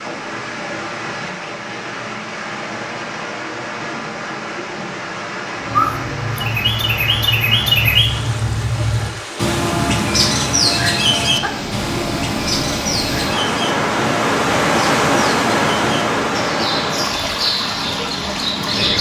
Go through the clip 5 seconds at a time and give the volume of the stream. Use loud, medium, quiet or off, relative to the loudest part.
medium, medium, loud, loud.